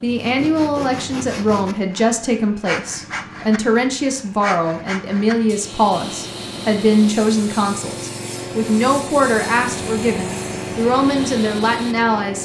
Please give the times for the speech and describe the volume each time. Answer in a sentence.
The speech can be heard from 0.0 to 12.4 s, at a steady volume.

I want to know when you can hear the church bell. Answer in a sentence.
The church bell can't be heard in this clip.